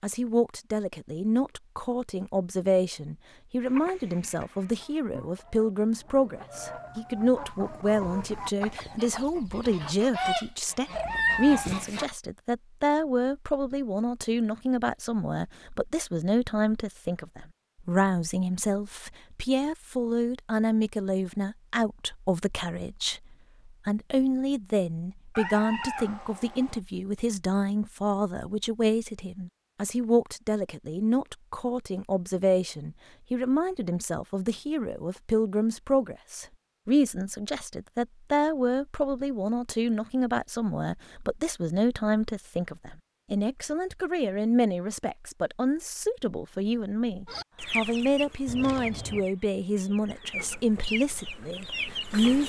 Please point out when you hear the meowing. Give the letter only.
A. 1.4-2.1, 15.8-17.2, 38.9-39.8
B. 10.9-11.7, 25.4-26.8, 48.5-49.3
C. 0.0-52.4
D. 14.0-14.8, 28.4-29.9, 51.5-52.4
B.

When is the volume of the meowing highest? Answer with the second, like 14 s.
11 s.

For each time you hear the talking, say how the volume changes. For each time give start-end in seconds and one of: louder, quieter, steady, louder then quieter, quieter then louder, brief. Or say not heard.
0.0-52.4 steady.